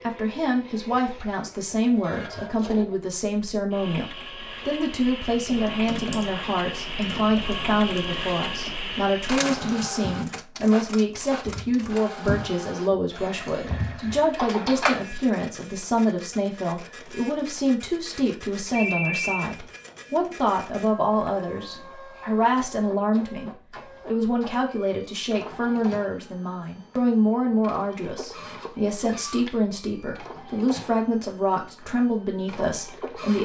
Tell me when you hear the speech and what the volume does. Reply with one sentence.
You can hear the speech from 0.0 to 33.3 s, at a steady volume.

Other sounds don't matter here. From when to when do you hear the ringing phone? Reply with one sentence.
You can hear the ringing phone from 18.7 to 19.5 s.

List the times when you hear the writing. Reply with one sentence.
You can't hear the writing here.